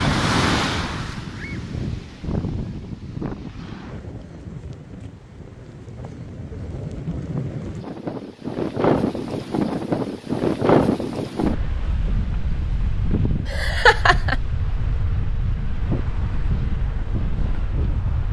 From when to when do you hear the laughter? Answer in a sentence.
You can hear the laughter from 13.4 to 14.3 s.